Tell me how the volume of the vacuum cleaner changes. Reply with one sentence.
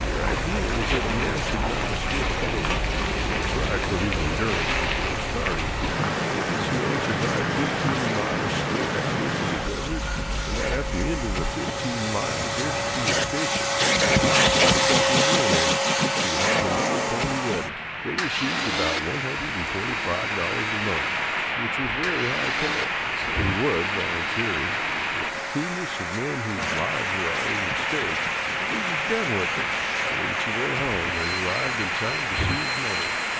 The loudness of the vacuum cleaner goes up, then down.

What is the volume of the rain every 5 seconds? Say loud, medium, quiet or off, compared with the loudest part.
loud, loud, medium, loud, loud, loud, loud.